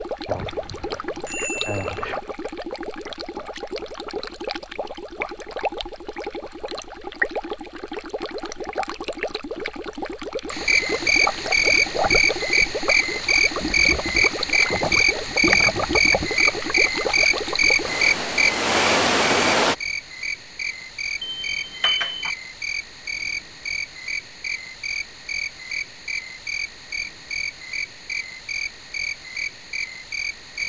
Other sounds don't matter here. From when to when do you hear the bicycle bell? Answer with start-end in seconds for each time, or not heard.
0.2-2.1, 21.2-22.3.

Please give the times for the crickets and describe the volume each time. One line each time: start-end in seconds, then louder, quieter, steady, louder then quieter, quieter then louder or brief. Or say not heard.
10.5-30.6 quieter.